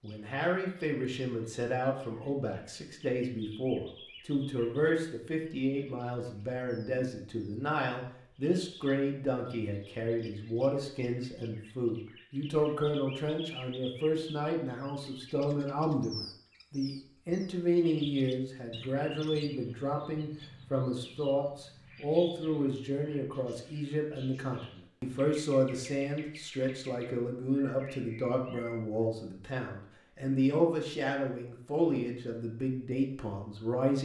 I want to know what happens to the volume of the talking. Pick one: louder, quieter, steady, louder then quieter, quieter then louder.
steady.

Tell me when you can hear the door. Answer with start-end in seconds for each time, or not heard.
not heard.